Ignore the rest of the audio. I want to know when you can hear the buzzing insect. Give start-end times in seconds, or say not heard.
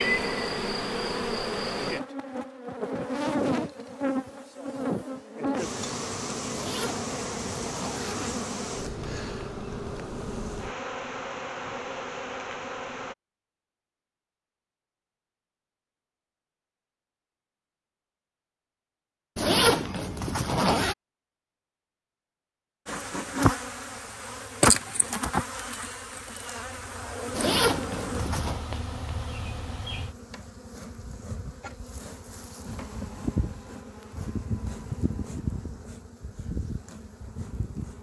0.0-13.2, 22.9-37.9.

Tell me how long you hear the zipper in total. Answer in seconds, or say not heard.
5 s.